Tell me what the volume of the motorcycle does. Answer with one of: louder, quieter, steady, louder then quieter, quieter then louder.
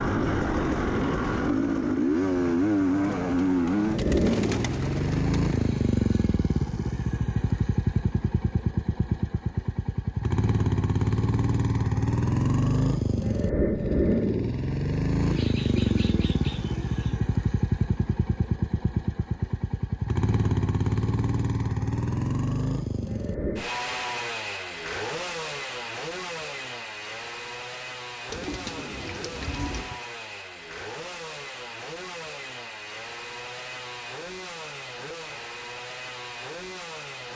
quieter.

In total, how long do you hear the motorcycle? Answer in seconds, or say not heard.
37 s.